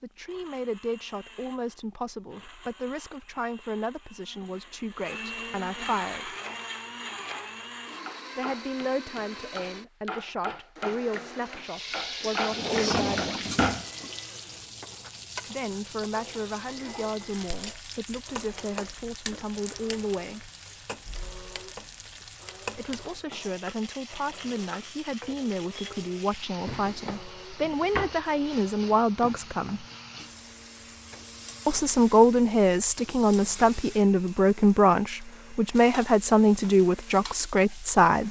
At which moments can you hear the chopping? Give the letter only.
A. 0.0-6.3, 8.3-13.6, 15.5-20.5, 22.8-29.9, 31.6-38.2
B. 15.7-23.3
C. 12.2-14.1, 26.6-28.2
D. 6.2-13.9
D.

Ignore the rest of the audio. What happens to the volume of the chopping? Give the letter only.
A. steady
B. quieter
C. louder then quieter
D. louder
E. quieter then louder
D.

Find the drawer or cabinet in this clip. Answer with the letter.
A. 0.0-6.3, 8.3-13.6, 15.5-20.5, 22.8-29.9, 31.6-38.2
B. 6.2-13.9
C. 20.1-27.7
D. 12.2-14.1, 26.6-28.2
D.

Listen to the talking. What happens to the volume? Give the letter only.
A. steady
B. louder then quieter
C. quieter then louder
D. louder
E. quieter
D.